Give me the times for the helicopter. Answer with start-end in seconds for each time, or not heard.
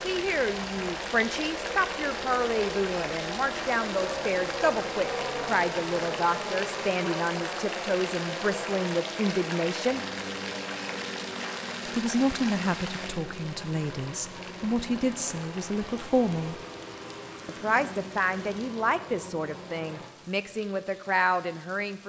0.0-20.1.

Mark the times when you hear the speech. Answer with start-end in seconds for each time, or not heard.
0.0-10.1, 11.8-16.6, 17.4-22.0.